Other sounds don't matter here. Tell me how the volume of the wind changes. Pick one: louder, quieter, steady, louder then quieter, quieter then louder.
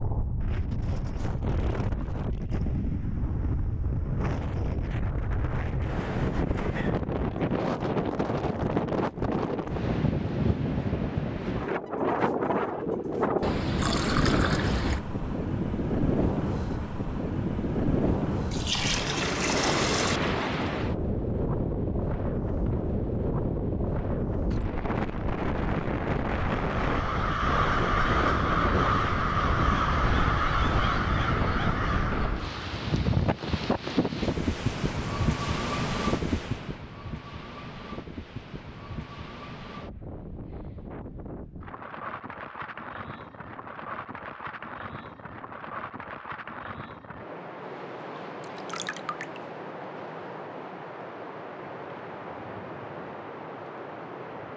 quieter.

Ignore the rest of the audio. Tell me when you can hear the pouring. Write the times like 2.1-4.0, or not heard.
13.4-15.0, 18.5-20.2, 48.4-49.4.